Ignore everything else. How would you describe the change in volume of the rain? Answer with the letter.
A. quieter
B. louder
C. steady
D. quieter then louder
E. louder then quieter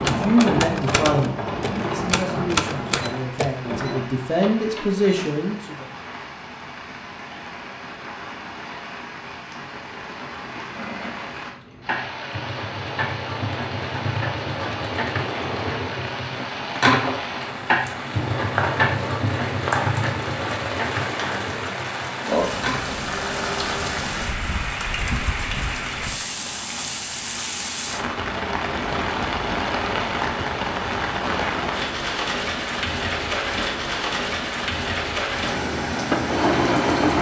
B.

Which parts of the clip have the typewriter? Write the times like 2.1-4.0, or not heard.
0.0-3.6.